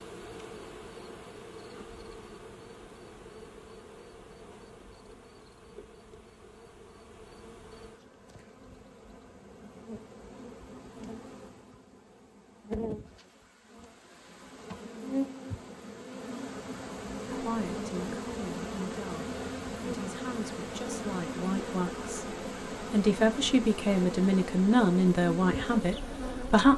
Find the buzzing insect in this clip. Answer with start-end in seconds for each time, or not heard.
0.0-26.7.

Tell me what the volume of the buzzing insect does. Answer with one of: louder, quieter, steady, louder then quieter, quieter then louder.
louder.